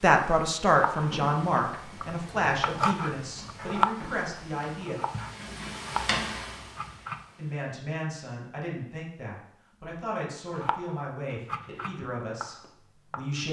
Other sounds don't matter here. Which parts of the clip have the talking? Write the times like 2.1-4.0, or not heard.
0.0-5.0, 7.3-13.4.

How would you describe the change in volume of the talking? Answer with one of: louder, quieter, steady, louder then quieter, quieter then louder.
quieter.